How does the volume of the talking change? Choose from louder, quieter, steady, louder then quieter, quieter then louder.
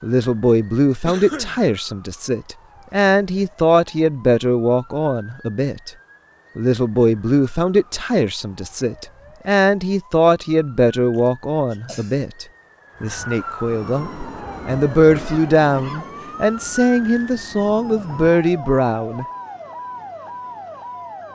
steady.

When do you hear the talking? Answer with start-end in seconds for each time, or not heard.
0.0-5.9, 6.5-19.2.